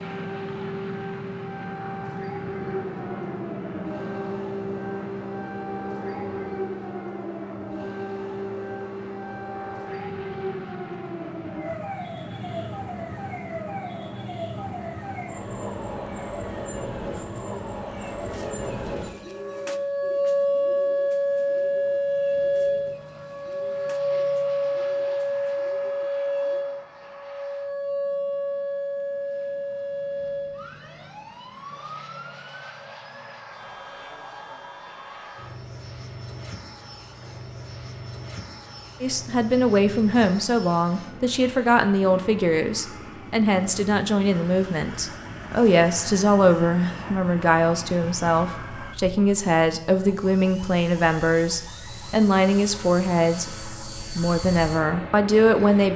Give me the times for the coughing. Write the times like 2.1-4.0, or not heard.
not heard.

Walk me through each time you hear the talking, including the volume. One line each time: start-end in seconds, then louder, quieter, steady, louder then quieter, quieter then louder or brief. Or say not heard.
39.0-55.9 steady.